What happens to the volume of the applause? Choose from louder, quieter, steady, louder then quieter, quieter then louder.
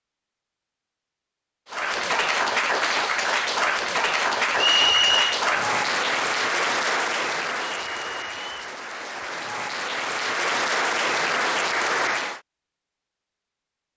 quieter then louder.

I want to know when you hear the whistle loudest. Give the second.
5 s.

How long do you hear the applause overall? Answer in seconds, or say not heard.
11 s.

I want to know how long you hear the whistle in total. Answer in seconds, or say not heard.
2 s.